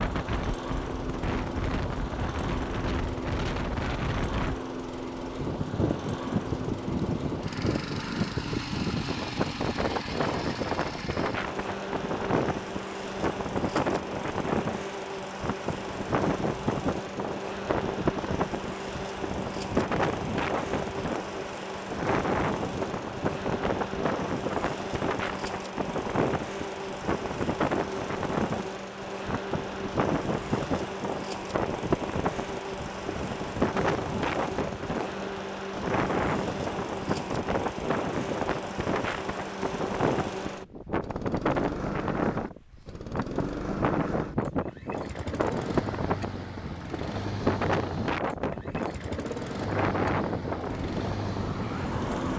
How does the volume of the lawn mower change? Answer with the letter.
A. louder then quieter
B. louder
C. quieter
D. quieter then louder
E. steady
E.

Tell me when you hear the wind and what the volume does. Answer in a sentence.
The wind can be heard from 0.0 to 52.3 s, at a steady volume.